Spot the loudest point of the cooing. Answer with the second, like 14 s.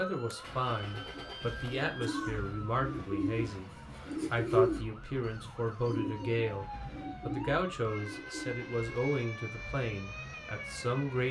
5 s.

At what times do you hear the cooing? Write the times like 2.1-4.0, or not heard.
1.1-8.7.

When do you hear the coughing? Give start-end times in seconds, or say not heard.
2.0-2.5.